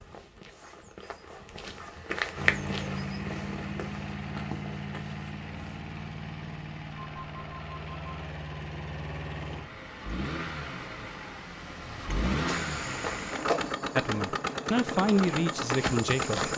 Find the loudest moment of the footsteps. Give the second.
2 s.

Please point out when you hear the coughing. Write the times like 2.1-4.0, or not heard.
not heard.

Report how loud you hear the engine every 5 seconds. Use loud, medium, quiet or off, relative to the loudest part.
loud, medium, loud, loud.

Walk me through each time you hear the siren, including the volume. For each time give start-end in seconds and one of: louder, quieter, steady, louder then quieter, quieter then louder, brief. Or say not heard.
not heard.